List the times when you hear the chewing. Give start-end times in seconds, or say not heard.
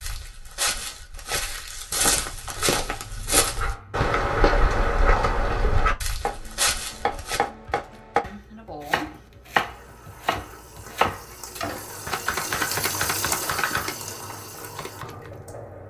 not heard.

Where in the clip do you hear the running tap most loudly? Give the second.
13 s.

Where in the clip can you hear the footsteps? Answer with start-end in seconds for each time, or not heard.
0.0-7.4.